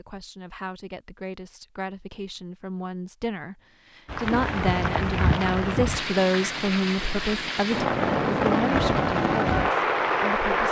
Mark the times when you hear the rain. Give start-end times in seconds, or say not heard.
4.0-10.6.